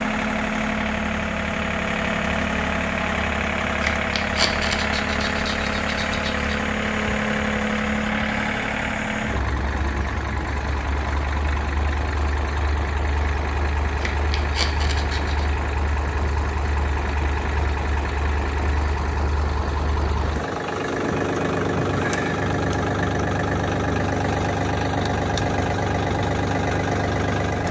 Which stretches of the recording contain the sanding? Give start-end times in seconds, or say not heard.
3.8-6.5, 14.0-15.5.